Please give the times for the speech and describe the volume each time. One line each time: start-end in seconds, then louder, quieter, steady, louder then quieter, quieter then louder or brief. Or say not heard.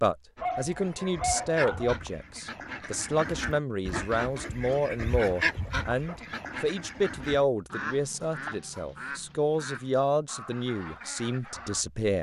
0.0-12.1 steady.